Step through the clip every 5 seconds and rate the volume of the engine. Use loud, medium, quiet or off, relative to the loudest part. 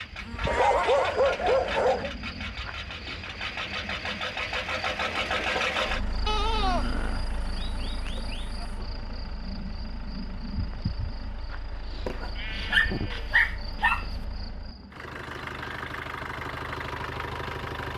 loud, loud, quiet, loud.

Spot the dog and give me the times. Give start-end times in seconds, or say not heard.
0.5-2.1, 12.1-14.1.